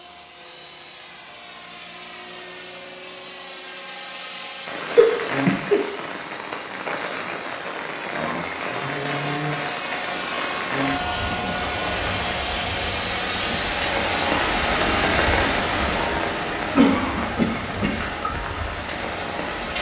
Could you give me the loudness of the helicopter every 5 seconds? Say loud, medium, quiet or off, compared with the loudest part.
medium, medium, loud, medium.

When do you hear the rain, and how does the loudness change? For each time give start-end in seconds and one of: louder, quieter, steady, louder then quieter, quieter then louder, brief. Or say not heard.
4.7-19.7 louder then quieter.